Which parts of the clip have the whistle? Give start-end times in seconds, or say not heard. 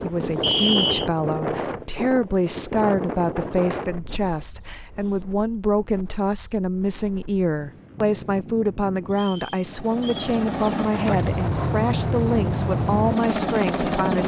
0.4-1.1, 9.1-10.3.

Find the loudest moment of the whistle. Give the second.
1 s.